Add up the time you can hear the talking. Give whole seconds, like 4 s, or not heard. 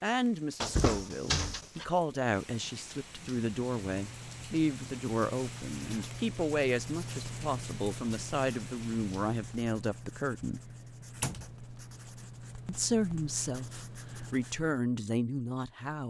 14 s.